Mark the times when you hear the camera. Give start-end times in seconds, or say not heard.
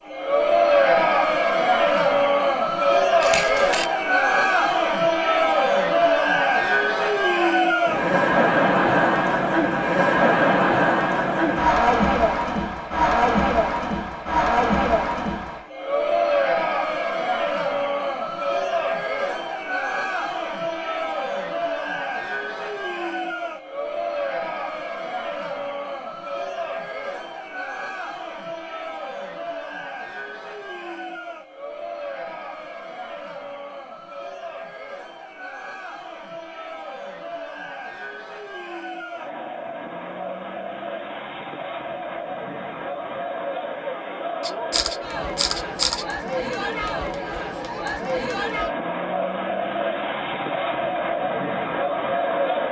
3.2-3.9, 44.4-46.0.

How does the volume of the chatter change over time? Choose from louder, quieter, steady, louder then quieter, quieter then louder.
quieter then louder.